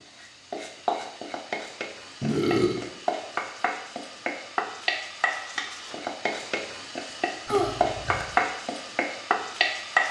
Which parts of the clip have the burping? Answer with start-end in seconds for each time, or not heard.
2.2-2.8, 7.5-8.2.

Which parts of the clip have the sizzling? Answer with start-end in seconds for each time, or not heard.
0.0-10.0.